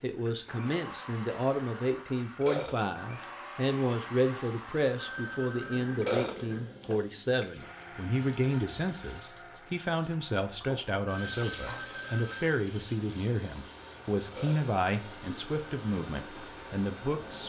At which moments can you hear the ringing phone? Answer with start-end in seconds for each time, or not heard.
5.0-5.8, 11.1-12.6.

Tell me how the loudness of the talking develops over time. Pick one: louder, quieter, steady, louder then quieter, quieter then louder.
steady.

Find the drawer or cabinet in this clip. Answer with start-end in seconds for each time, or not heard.
not heard.